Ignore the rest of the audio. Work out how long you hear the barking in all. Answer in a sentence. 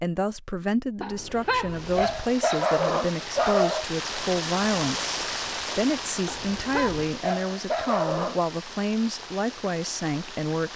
You can hear the barking for 5 seconds altogether.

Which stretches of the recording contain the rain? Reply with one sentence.
The rain can be heard from 1.6 to 10.7 s.